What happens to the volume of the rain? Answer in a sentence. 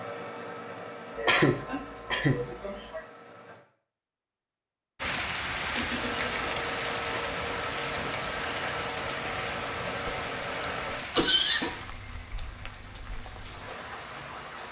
The volume of the rain goes down.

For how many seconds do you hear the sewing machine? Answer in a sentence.
The sewing machine can be heard for 9 seconds in total.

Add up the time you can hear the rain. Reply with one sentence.
The rain can be heard for 10 seconds in total.